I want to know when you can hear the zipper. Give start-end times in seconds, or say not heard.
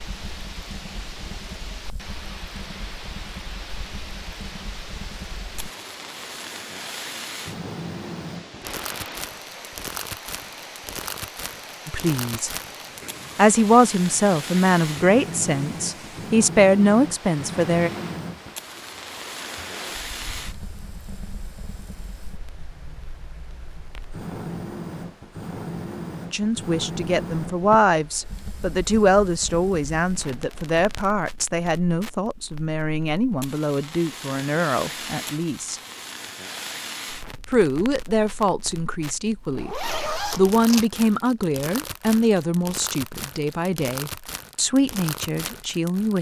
39.5-40.9.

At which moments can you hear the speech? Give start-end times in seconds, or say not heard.
11.8-12.5, 13.3-17.9, 26.3-35.8, 37.5-46.1.